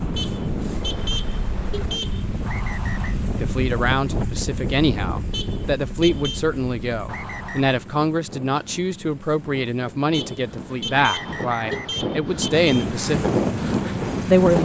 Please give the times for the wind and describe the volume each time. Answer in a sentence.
The wind can be heard from 0.0 to 14.5 s, getting quieter then louder.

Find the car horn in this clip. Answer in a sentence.
You can hear the car horn from 0.1 to 2.2 s, from 5.3 to 6.4 s and from 10.1 to 12.8 s.